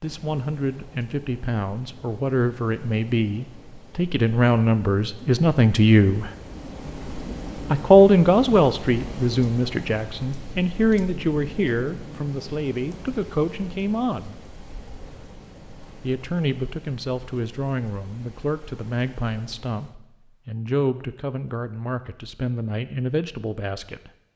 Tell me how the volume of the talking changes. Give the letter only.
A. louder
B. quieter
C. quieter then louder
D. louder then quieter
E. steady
D.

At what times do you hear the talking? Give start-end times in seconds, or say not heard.
0.0-6.3, 7.7-14.3, 16.0-24.1.